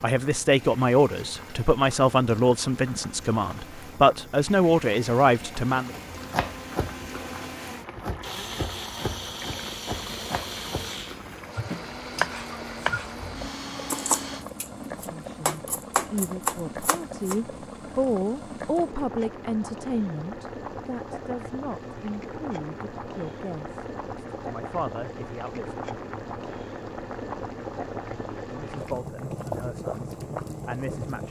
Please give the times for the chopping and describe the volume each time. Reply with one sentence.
The chopping can be heard from 6.2 to 17.4 s, getting louder.